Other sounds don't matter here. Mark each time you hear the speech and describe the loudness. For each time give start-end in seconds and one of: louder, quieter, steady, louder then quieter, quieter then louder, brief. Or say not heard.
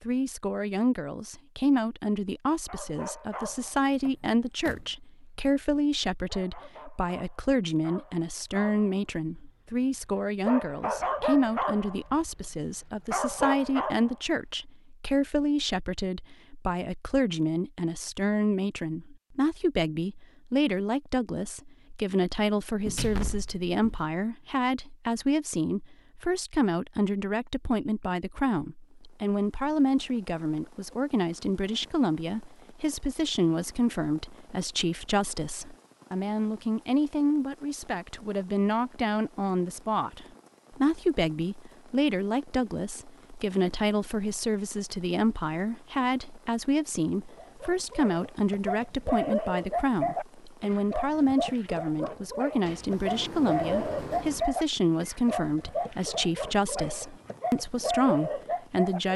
0.0-59.1 steady.